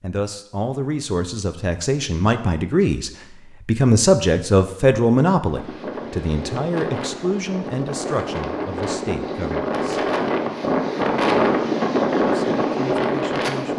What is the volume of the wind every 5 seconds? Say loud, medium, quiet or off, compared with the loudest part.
off, medium, loud.